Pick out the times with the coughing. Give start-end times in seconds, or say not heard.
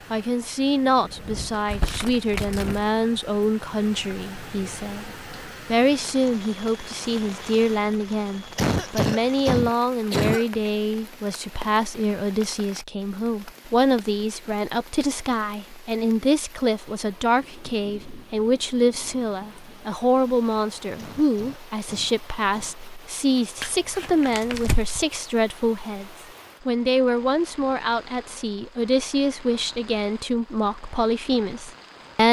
8.6-10.4, 20.9-22.8.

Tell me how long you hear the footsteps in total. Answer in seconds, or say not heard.
not heard.